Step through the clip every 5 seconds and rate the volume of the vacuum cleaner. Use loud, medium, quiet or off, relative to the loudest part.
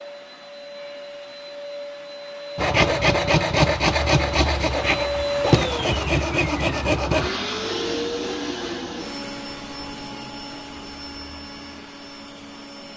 medium, loud, medium.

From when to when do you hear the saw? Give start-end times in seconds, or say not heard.
2.5-7.3.